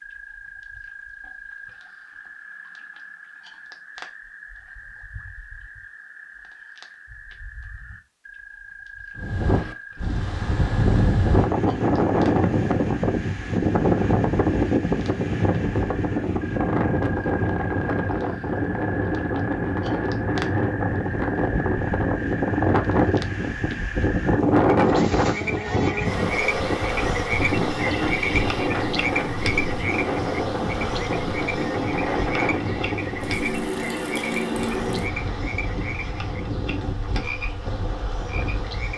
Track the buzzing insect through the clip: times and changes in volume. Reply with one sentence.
The buzzing insect can be heard from 24.9 to 38.9 s, getting quieter.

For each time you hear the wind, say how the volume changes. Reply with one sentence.
The wind can be heard from 9.2 to 38.9 s, getting quieter.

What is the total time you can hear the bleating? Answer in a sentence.
The bleating can't be heard in this clip.